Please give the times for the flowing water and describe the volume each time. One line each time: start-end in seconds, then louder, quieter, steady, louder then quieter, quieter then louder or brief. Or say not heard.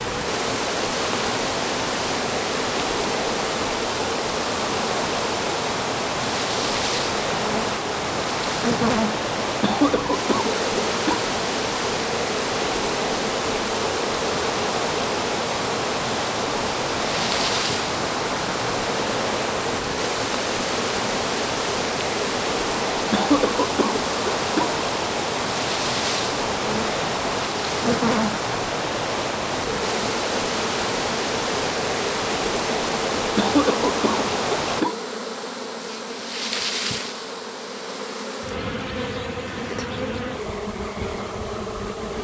0.0-34.9 steady.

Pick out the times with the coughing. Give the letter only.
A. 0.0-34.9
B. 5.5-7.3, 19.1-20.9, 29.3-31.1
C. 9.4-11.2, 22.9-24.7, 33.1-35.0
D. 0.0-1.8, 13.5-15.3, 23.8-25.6
C.